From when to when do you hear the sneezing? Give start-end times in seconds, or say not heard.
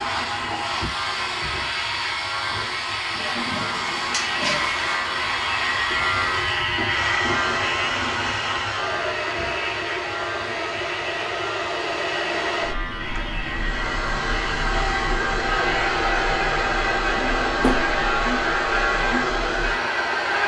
not heard.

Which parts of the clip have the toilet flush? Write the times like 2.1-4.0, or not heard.
3.1-5.0.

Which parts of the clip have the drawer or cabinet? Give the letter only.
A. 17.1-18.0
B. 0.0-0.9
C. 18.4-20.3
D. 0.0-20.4
A.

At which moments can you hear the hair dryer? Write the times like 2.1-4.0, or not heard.
0.0-20.4.